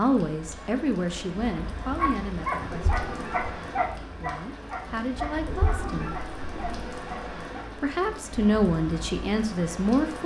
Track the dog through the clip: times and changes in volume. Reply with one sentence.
You can hear the dog from 1.9 to 7.7 s, getting quieter.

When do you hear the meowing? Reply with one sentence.
The meowing can be heard from 2.7 to 3.5 s and from 5.5 to 6.9 s.